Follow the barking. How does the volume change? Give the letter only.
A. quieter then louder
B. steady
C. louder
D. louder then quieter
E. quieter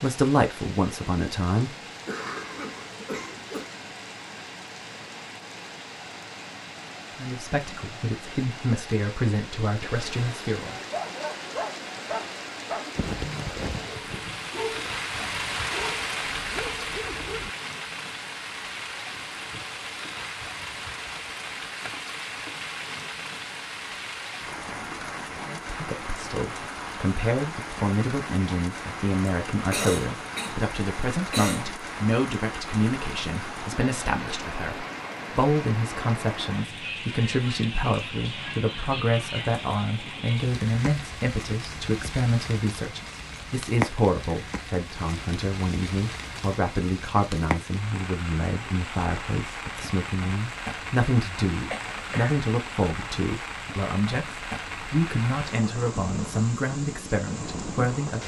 E.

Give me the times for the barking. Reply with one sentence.
The barking can be heard from 10.9 to 17.5 s.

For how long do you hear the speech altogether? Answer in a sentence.
The speech can be heard for 38 seconds in total.